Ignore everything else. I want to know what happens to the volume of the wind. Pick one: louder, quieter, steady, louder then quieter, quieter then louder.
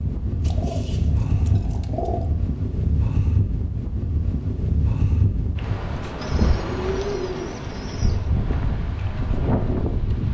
steady.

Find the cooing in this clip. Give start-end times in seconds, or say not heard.
0.4-2.2, 6.2-8.3.